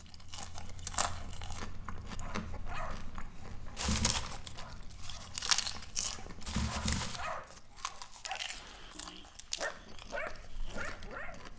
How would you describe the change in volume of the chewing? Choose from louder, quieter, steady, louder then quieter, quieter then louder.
louder then quieter.